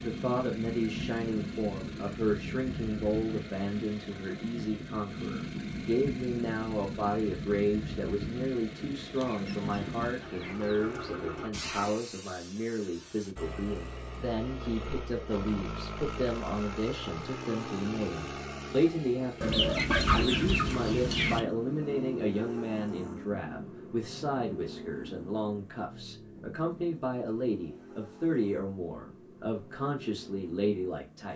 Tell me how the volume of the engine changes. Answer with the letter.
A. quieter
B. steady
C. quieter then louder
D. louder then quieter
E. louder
A.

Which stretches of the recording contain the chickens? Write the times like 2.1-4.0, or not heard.
9.2-11.2, 19.4-21.4.